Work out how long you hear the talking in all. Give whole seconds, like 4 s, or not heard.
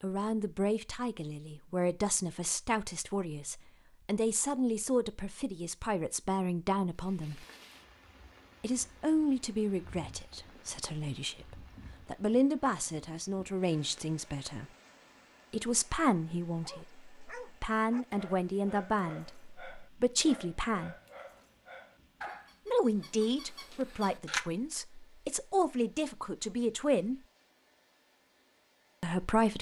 24 s.